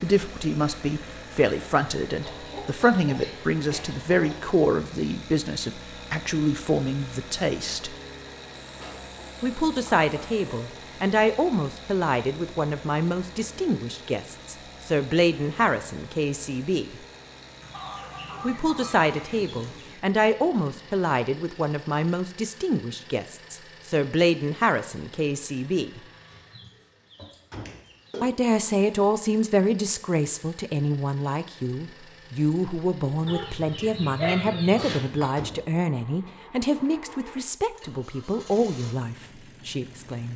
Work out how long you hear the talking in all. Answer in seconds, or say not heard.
35 s.